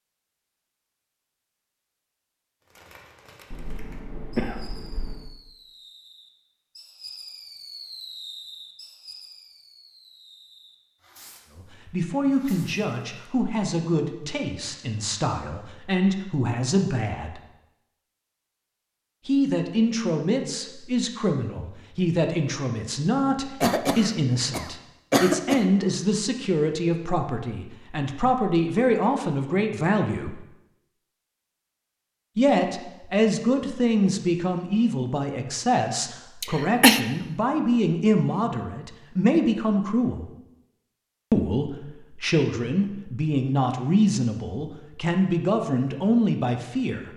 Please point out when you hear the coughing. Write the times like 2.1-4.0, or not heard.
3.5-5.3, 23.6-25.6, 36.4-37.0.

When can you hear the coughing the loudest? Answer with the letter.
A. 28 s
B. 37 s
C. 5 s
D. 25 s
B.